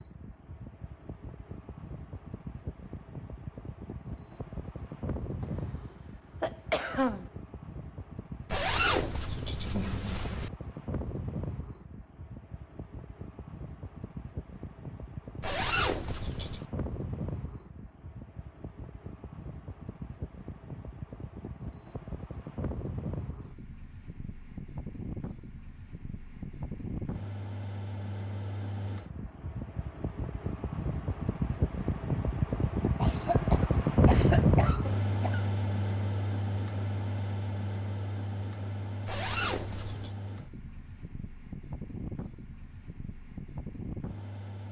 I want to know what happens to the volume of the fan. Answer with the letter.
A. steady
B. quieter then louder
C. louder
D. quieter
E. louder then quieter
E.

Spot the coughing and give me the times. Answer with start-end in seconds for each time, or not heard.
5.4-7.3, 33.0-35.4.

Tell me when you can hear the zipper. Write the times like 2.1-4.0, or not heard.
8.5-10.5, 15.4-16.6, 39.0-40.1.